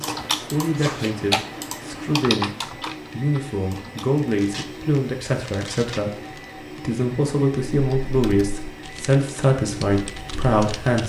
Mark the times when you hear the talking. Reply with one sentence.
You can hear the talking from 0.0 to 11.0 s.